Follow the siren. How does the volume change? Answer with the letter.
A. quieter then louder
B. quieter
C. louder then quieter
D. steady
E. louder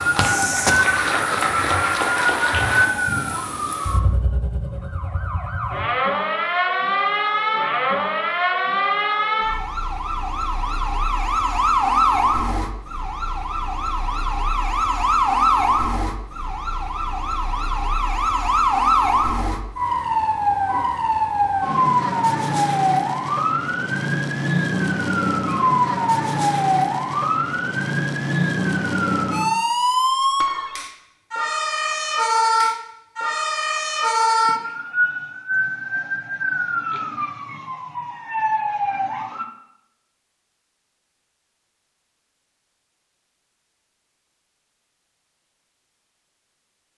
D.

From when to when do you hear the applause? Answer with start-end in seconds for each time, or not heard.
0.0-2.9.